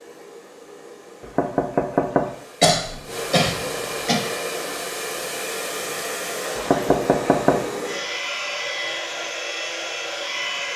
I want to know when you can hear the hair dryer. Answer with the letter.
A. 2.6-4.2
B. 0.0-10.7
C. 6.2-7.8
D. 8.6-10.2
B.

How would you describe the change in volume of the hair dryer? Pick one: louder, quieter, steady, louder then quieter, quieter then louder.
louder.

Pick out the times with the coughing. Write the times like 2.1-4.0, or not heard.
2.6-4.2.